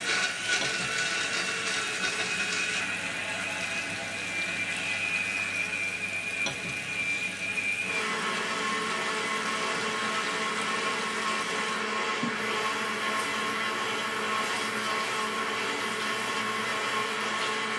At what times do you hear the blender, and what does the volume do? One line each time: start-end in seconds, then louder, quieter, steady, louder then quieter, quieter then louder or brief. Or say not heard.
0.0-17.7 steady.